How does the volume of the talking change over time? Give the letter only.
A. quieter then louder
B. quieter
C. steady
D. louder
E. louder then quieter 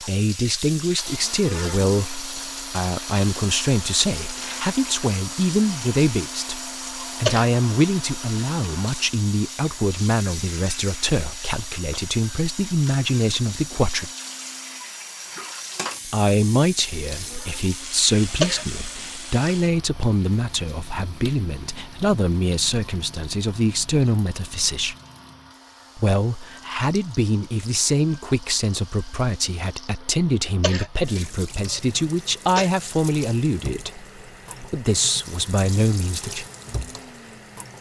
C.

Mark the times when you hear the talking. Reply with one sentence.
The talking can be heard from 0.0 to 14.1 s, from 16.1 to 24.9 s and from 25.9 to 36.5 s.